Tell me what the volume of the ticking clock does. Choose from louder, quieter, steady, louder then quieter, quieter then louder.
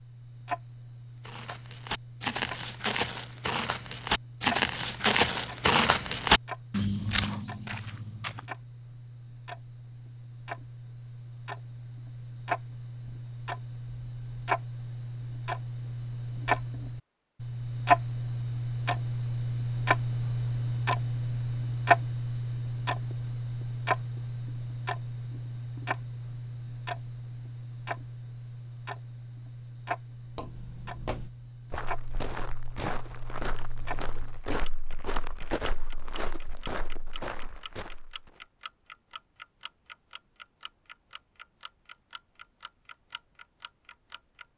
louder then quieter.